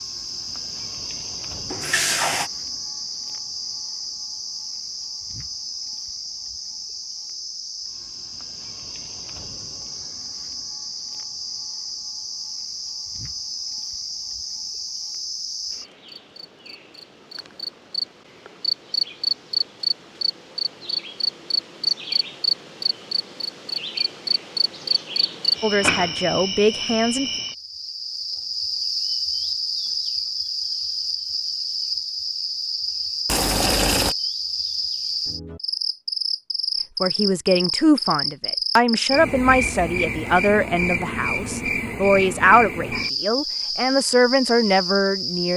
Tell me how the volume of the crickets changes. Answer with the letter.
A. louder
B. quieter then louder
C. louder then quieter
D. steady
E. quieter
A.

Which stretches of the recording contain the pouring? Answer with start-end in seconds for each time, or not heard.
1.7-2.5, 33.2-34.1.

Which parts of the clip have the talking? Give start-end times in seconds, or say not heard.
25.6-27.3, 37.0-45.5.